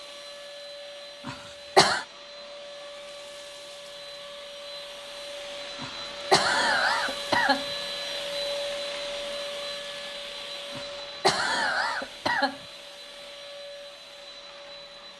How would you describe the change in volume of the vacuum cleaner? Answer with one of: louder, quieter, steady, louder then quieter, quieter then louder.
louder then quieter.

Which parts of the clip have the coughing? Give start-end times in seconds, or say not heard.
1.2-2.0, 5.8-7.7, 10.8-12.6.